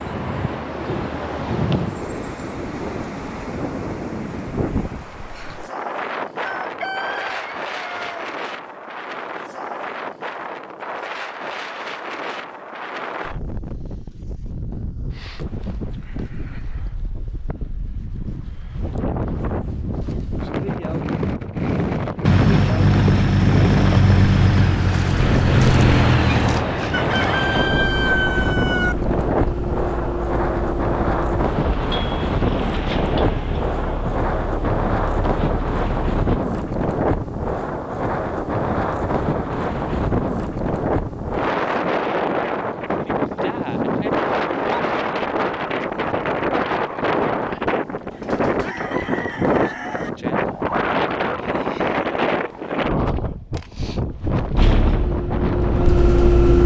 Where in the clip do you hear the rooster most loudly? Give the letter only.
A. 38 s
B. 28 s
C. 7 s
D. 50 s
B.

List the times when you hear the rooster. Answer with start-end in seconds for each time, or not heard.
6.4-8.3, 26.9-28.9, 48.1-50.1.